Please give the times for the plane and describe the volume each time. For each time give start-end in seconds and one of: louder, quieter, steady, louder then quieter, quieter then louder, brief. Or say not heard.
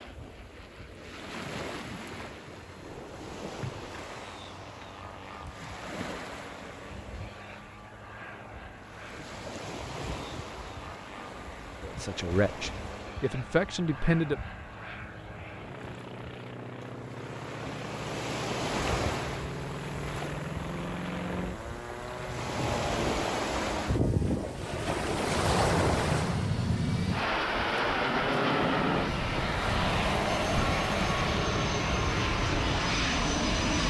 0.0-33.8 louder.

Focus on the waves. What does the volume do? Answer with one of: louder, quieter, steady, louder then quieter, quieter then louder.
louder.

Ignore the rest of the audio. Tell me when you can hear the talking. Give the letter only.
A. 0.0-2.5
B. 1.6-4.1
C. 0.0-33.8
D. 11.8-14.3
D.